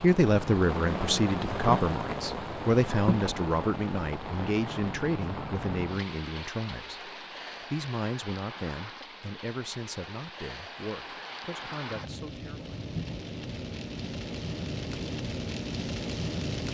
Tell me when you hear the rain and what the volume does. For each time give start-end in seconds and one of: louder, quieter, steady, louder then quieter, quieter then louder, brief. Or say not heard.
0.0-16.6 quieter then louder.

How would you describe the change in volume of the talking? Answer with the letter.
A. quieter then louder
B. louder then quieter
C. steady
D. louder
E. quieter
E.